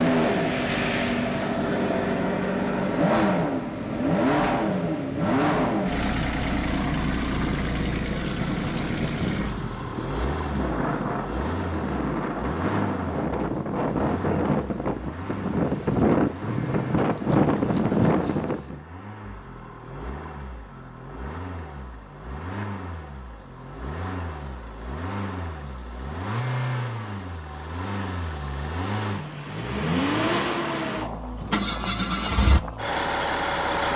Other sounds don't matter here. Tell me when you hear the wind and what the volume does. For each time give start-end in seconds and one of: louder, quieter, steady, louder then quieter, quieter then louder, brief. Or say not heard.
0.1-18.8 louder.